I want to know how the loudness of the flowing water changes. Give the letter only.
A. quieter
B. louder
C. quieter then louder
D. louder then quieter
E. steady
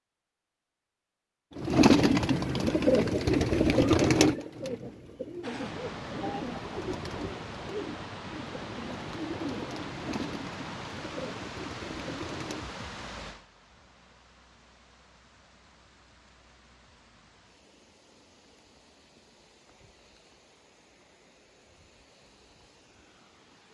A.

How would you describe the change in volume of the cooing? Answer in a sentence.
The volume of the cooing goes down.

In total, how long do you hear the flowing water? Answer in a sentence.
You can hear the flowing water for 18 seconds altogether.